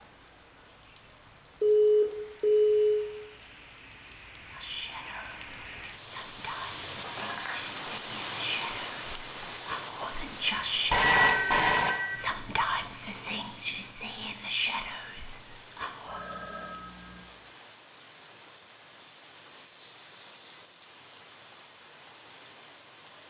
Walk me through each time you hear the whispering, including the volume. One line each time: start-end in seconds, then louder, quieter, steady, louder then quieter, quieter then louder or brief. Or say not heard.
4.5-16.2 louder.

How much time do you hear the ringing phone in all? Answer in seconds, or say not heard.
4 s.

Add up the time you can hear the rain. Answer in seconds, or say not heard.
23 s.